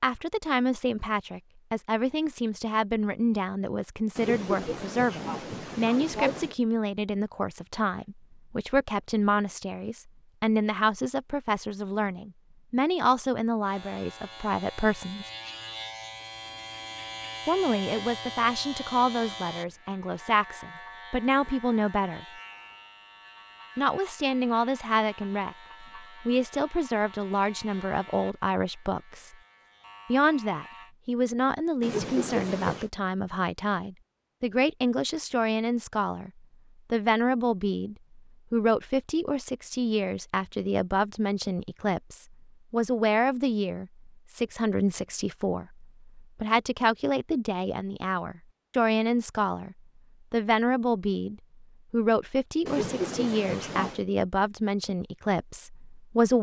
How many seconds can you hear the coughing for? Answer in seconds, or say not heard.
5 s.